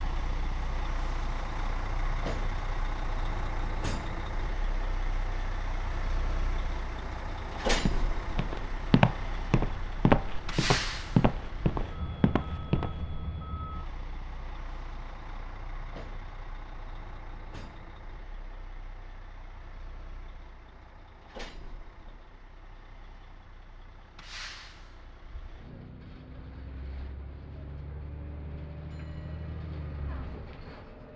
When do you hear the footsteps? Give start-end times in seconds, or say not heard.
7.8-13.2.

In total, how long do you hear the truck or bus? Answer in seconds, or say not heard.
31 s.